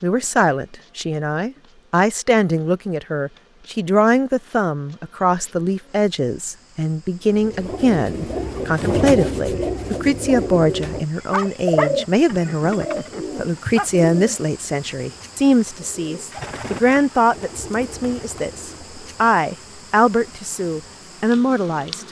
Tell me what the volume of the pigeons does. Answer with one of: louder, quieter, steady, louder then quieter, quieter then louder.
quieter.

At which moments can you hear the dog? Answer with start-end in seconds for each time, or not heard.
11.3-13.9.